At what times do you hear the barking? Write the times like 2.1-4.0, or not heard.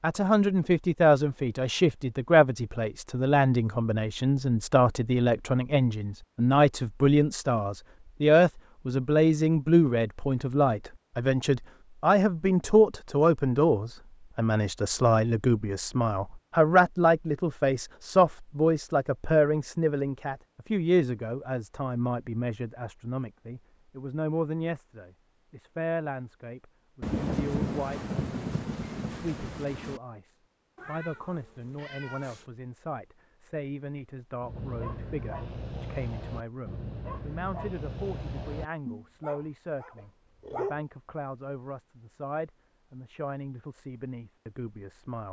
34.4-40.9.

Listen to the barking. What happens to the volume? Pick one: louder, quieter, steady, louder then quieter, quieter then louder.
quieter.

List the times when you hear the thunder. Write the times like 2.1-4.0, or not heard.
27.0-30.0.